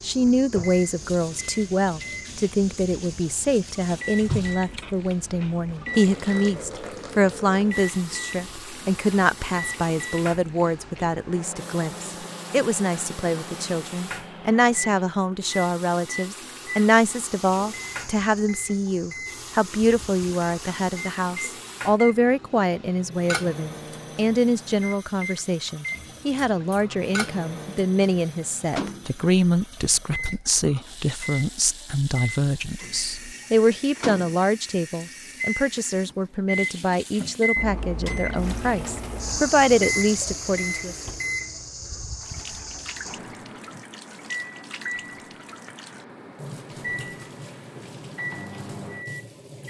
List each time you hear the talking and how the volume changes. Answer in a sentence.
The talking can be heard from 0.0 to 41.0 s, at a steady volume.